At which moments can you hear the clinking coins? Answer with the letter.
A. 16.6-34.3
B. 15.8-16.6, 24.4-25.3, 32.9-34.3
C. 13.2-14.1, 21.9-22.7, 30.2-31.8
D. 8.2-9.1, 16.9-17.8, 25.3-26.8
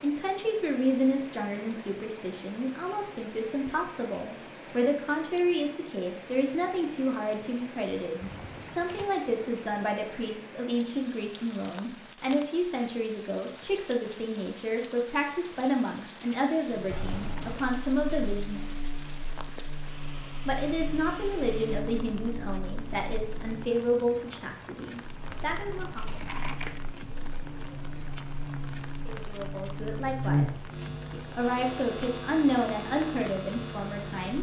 D.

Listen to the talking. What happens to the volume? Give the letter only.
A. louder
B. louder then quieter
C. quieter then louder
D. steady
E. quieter
D.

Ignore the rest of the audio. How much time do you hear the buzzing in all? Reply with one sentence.
The buzzing can be heard for 18 seconds in total.